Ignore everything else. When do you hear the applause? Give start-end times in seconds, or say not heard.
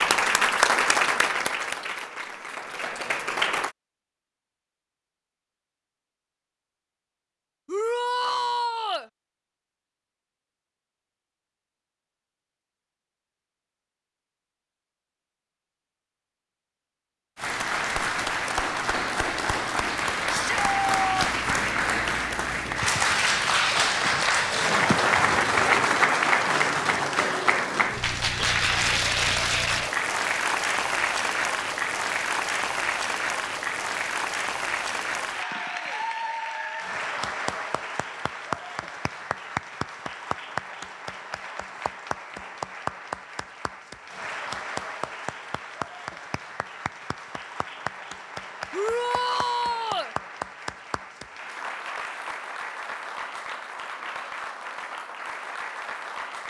0.0-3.7, 17.4-56.4.